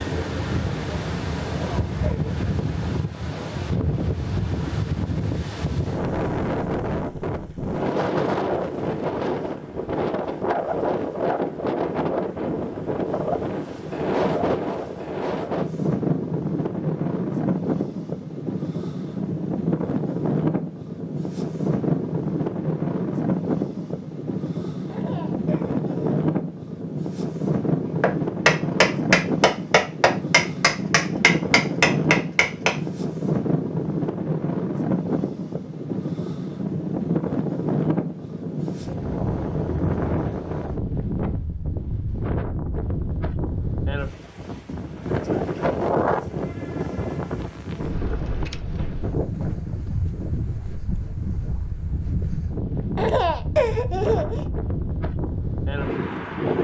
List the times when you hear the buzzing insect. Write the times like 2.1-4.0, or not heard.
not heard.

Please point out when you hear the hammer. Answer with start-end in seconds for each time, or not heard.
28.0-32.8.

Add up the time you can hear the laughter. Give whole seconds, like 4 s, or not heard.
4 s.